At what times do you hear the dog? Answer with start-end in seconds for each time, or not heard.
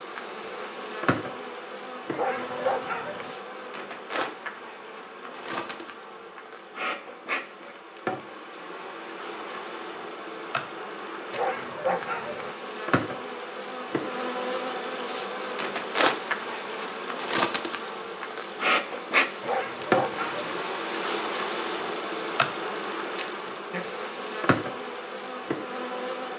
2.1-3.4, 11.3-12.6, 19.4-20.6.